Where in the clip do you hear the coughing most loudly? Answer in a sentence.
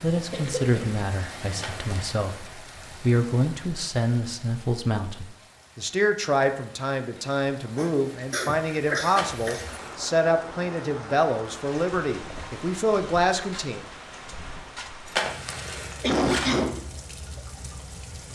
The loudest moment of the coughing is at 16 seconds.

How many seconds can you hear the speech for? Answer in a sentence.
You can hear the speech for 14 seconds altogether.